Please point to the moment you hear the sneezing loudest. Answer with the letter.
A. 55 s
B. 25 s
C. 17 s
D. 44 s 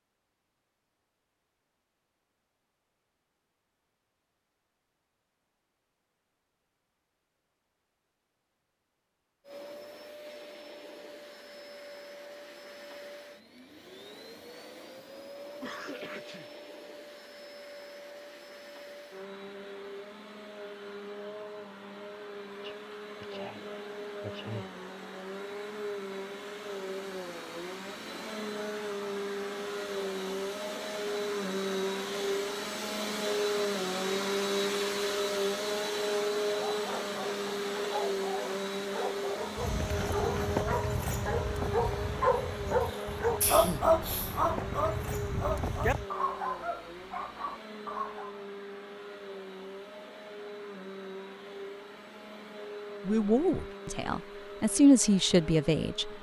D.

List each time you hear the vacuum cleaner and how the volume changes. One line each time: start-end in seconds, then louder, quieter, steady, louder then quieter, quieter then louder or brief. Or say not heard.
9.4-56.1 louder then quieter.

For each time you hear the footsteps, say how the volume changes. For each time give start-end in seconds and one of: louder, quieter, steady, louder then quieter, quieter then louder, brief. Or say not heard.
39.5-46.0 quieter then louder.